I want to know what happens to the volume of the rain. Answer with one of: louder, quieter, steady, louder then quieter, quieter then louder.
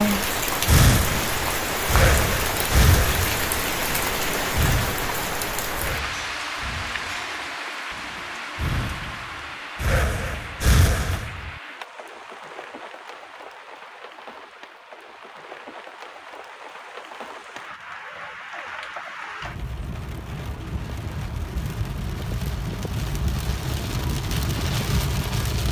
quieter then louder.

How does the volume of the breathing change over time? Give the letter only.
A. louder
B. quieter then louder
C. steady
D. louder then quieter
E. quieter
B.